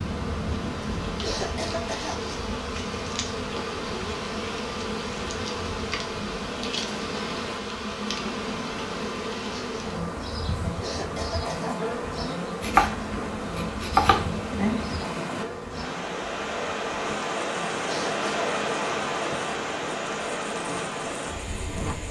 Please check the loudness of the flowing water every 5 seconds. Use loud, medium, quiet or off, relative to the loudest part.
medium, medium, medium, loud, loud.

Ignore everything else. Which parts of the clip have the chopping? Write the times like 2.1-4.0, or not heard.
12.6-14.8.